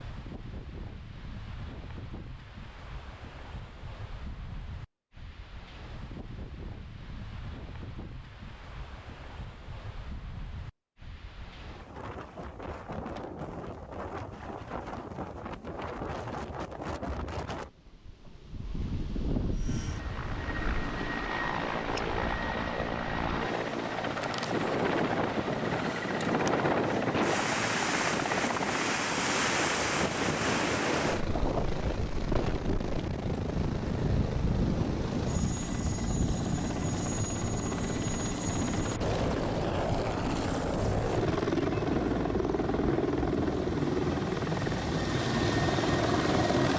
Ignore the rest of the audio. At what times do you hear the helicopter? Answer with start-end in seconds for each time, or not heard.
19.5-46.7.